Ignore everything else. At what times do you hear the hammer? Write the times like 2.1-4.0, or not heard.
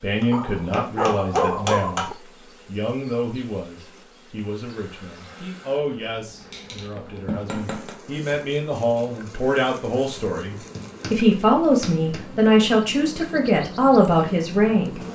0.2-2.0, 6.4-8.0, 10.6-12.2.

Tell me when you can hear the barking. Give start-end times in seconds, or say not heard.
0.3-2.1.